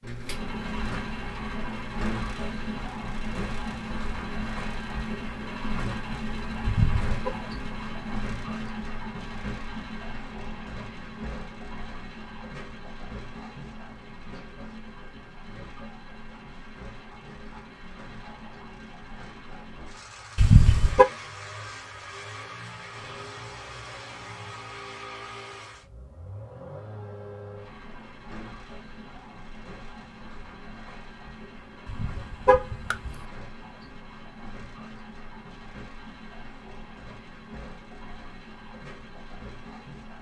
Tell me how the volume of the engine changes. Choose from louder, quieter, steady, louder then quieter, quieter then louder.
quieter.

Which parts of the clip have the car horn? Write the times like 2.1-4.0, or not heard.
6.7-7.3, 20.4-21.1, 31.9-33.1.